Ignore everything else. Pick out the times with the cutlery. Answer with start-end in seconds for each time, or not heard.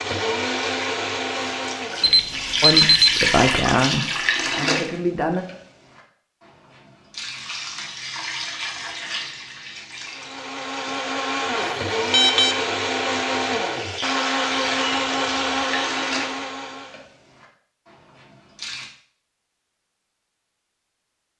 not heard.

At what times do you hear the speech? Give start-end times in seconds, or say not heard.
2.6-5.5.